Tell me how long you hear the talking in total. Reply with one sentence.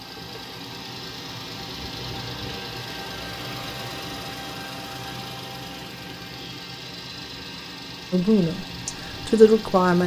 You can hear the talking for 2 seconds altogether.